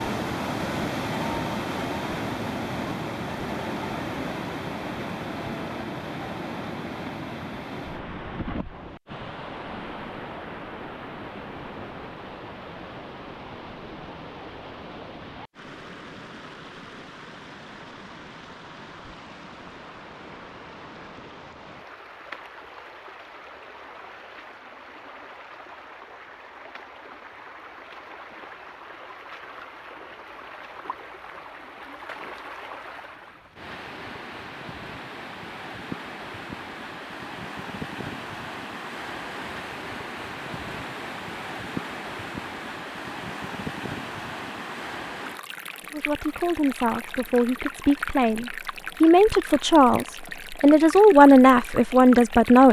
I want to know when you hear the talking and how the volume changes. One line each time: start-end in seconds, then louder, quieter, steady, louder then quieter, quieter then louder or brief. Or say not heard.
45.9-52.6 louder.